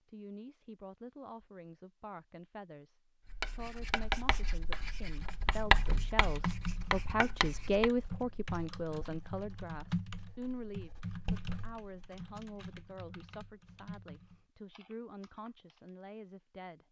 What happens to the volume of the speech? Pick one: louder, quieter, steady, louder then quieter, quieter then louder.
louder then quieter.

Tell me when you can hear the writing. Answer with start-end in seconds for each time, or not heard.
3.2-11.8.